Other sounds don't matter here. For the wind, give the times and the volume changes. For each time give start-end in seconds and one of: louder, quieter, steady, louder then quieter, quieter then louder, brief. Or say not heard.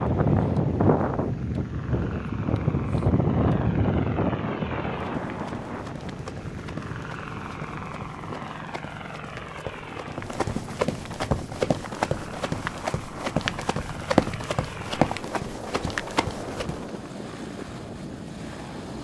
0.0-19.0 quieter.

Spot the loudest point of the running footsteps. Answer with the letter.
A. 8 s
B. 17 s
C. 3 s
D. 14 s
D.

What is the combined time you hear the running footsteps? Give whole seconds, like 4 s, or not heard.
12 s.